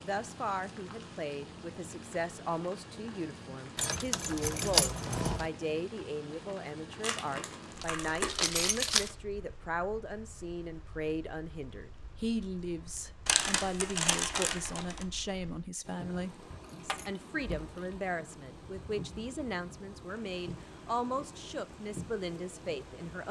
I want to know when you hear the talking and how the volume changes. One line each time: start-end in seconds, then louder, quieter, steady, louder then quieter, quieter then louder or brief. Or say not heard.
0.0-23.2 steady.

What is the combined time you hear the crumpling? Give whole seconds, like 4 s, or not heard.
4 s.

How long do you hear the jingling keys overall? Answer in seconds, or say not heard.
5 s.